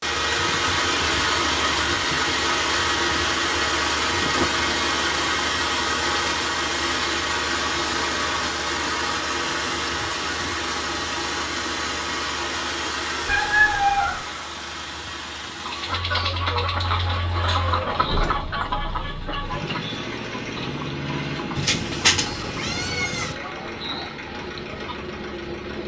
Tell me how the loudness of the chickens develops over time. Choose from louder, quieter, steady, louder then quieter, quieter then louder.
quieter.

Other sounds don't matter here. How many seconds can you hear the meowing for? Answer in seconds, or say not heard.
3 s.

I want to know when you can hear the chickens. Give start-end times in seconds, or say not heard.
15.6-25.1.